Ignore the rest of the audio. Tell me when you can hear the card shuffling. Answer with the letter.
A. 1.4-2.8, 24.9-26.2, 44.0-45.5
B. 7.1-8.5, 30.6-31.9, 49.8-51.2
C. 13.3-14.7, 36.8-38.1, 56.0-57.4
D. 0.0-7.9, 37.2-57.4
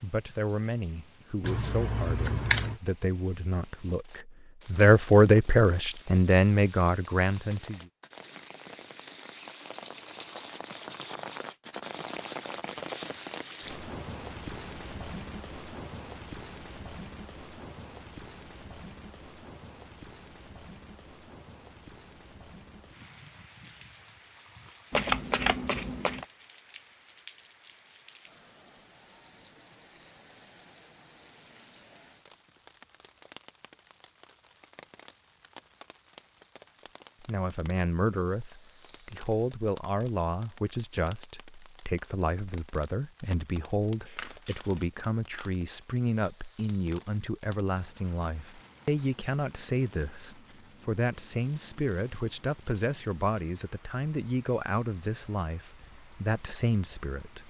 A.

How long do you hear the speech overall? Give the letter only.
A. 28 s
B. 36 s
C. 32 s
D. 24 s
A.